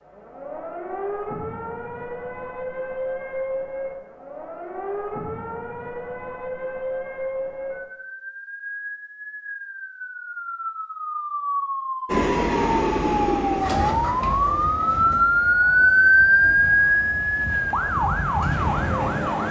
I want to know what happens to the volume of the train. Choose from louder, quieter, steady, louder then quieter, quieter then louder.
quieter then louder.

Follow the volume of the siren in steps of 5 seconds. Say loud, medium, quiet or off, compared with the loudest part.
quiet, quiet, medium, loud.